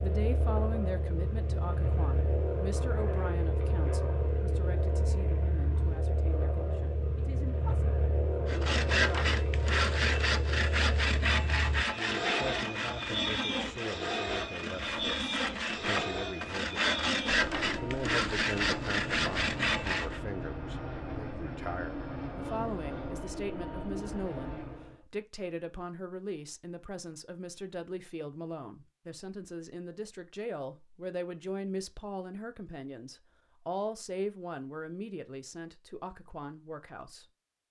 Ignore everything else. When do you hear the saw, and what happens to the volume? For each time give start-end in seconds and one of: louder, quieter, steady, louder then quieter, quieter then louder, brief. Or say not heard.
8.4-20.2 quieter then louder.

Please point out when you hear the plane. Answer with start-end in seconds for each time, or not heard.
0.0-25.0.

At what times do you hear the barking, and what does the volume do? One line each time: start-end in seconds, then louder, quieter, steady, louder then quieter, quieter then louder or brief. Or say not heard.
not heard.